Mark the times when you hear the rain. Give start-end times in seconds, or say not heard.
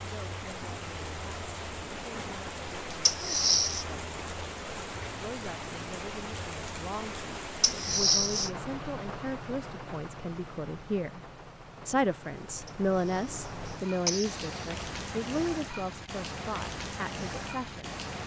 0.0-18.2.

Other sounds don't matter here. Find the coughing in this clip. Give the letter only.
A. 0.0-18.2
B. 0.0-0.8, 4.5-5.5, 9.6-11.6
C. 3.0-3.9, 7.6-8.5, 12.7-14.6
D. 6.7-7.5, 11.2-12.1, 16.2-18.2
C.